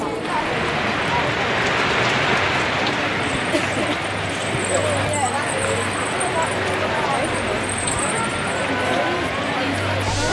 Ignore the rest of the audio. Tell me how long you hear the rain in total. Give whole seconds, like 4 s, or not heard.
10 s.